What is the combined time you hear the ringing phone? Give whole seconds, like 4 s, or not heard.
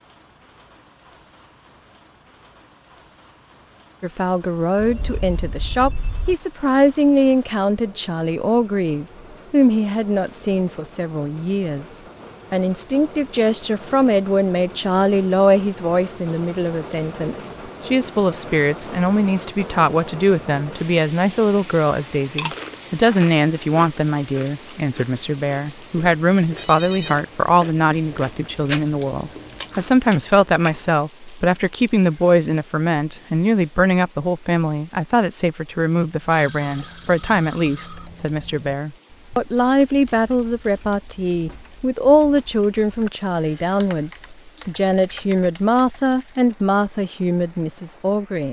4 s.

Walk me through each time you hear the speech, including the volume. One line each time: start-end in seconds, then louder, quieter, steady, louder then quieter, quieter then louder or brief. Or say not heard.
4.0-48.4 steady.